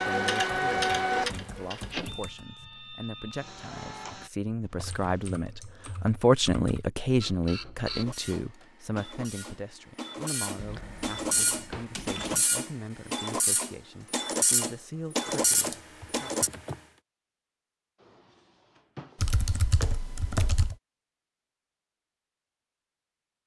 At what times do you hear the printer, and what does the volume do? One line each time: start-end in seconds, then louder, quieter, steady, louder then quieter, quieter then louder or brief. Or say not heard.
0.0-4.3 quieter
7.2-16.5 louder.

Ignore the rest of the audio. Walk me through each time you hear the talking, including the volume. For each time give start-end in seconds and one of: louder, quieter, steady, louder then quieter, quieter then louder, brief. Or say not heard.
0.1-16.3 louder then quieter.